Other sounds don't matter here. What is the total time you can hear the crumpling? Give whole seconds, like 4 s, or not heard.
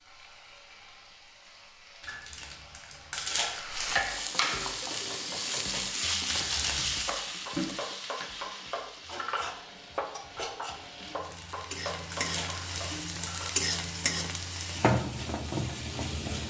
4 s.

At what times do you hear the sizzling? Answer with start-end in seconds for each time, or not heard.
0.0-16.4.